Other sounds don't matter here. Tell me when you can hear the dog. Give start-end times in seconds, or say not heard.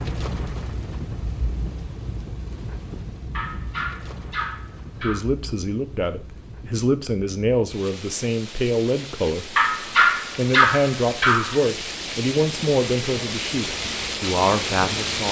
3.3-5.2, 9.6-11.6.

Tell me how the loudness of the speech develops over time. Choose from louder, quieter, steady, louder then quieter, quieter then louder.
steady.